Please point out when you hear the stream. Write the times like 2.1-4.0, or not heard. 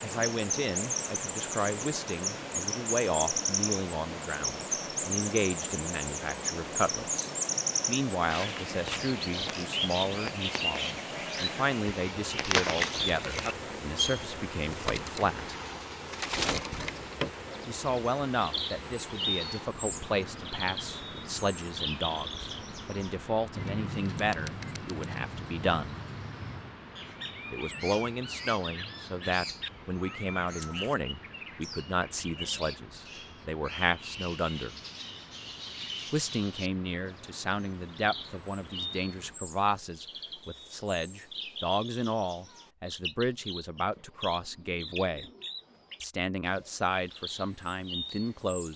0.0-39.4.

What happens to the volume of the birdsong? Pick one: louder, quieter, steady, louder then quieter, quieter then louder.
quieter.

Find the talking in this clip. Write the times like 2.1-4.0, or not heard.
0.0-15.6, 17.6-25.9, 27.5-34.8, 36.1-45.3, 46.0-48.7.